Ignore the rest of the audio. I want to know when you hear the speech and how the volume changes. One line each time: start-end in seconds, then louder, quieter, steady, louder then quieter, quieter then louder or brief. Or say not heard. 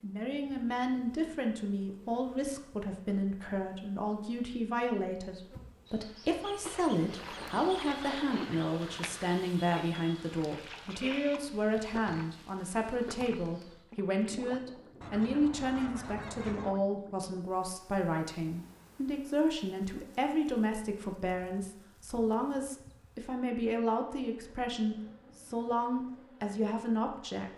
0.0-27.5 steady.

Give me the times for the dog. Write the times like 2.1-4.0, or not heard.
not heard.